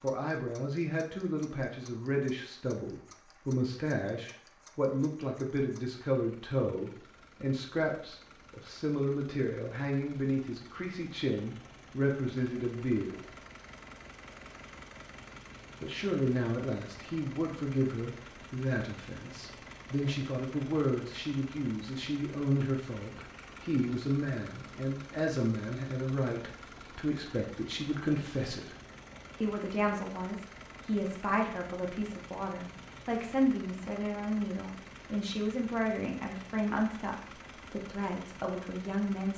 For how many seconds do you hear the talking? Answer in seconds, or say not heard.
36 s.